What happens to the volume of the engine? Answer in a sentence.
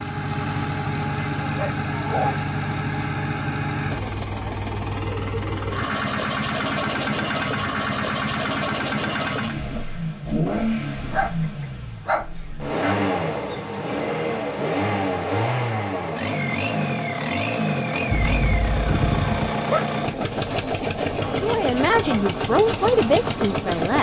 The volume of the engine stays about the same.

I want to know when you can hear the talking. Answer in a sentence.
The talking can be heard from 21.2 to 23.9 s.